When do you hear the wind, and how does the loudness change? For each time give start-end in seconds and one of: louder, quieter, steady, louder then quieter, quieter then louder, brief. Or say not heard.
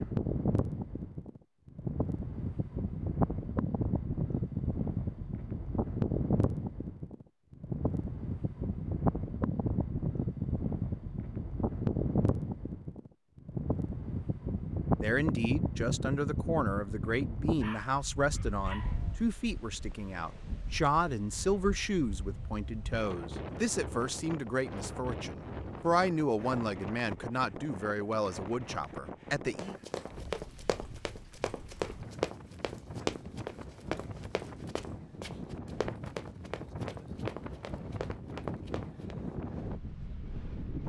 0.0-40.8 quieter.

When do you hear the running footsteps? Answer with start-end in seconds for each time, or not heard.
29.6-39.1.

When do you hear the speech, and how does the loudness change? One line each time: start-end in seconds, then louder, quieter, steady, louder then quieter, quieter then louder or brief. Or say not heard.
15.0-29.8 steady.